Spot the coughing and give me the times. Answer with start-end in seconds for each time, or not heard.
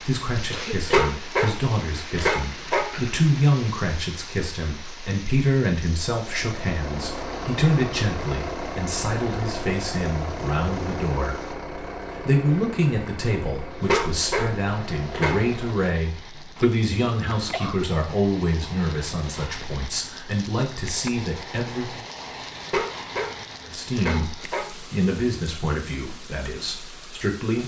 0.5-0.9, 16.6-17.9.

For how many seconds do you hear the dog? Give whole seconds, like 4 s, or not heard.
6 s.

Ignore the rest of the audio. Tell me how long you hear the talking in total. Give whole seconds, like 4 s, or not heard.
26 s.